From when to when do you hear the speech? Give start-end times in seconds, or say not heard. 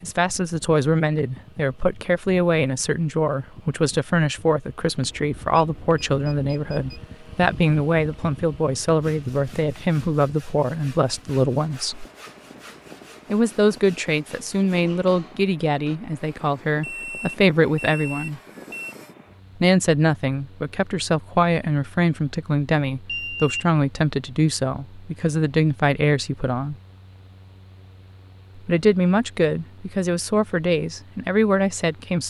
0.0-12.1, 13.3-18.4, 19.6-26.8, 28.6-32.2.